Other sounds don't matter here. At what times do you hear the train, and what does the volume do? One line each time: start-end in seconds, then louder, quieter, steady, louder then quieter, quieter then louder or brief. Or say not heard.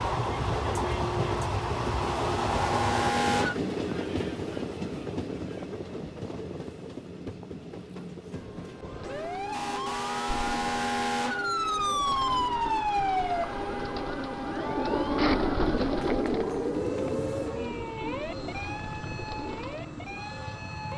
0.0-20.9 quieter.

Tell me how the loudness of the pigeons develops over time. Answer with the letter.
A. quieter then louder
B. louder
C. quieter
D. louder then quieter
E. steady
D.